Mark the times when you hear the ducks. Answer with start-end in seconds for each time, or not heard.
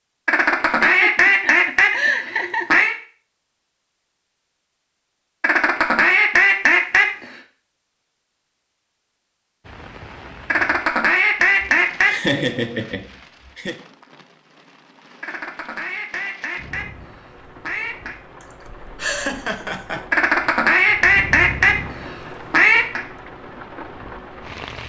0.2-3.0, 5.4-7.3, 10.5-12.1, 15.2-18.2, 20.1-23.1.